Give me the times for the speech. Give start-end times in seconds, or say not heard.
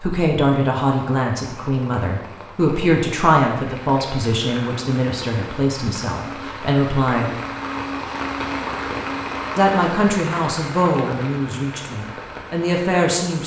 0.0-7.3, 9.6-13.4.